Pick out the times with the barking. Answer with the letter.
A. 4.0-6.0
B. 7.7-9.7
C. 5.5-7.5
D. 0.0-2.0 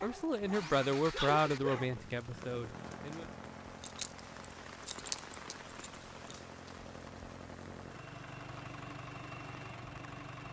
D.